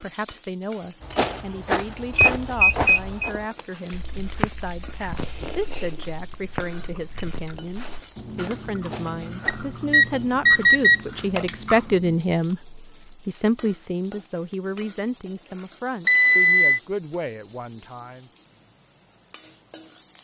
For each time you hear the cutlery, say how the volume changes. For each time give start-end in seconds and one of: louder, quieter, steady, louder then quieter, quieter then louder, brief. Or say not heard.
not heard.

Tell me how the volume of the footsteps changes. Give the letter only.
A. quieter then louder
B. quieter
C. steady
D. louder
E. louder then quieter
B.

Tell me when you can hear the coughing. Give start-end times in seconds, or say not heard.
not heard.